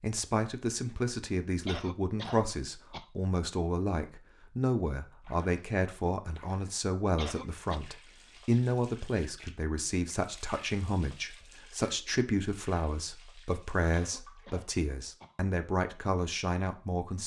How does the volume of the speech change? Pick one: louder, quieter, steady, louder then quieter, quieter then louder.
steady.